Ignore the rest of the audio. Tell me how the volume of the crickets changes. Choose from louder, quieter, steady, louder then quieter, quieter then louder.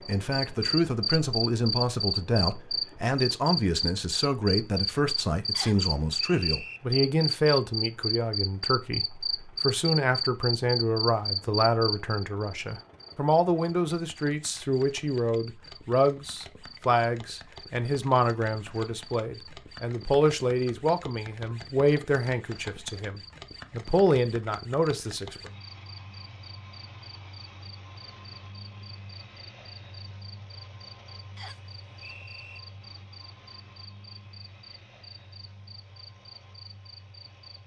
quieter.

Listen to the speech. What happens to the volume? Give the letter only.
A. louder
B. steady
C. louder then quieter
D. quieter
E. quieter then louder
B.